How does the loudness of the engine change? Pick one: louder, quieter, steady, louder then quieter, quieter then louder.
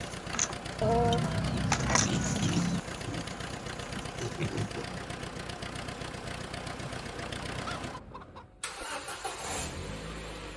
steady.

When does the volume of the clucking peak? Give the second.
1 s.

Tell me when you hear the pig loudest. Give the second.
2 s.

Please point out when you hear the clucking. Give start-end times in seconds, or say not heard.
0.8-2.8, 6.8-8.5.